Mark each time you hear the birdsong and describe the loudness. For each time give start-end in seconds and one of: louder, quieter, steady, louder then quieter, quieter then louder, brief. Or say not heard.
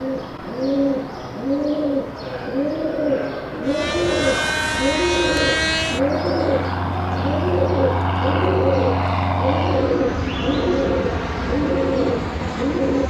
0.0-13.0 steady.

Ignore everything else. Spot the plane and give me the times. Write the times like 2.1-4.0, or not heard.
3.6-13.0.